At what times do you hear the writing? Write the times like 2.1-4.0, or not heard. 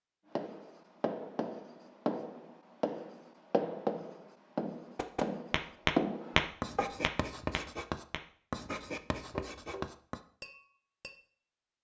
0.3-10.2.